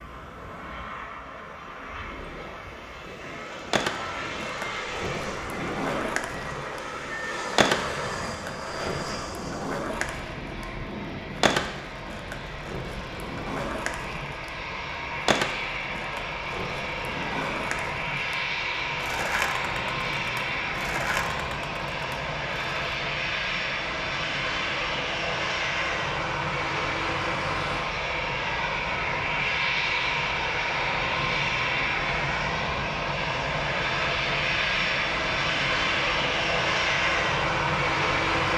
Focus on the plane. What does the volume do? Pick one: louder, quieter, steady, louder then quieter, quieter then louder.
louder.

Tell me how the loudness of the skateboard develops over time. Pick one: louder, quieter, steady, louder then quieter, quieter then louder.
steady.